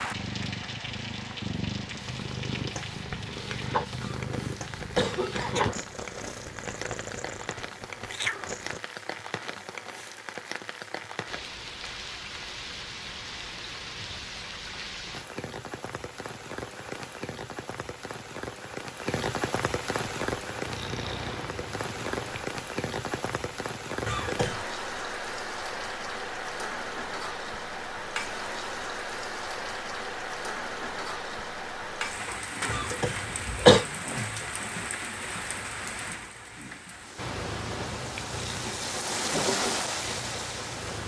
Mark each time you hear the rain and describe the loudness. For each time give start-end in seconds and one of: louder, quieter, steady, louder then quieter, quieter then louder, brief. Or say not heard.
0.0-41.0 louder.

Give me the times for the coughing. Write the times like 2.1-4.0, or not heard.
4.0-5.8, 24.1-24.6, 32.6-33.9.